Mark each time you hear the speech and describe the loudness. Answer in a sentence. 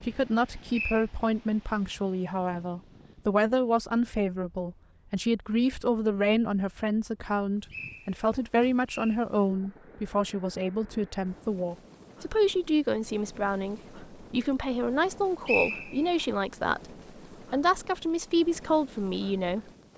You can hear the speech from 0.0 to 19.9 s, at a steady volume.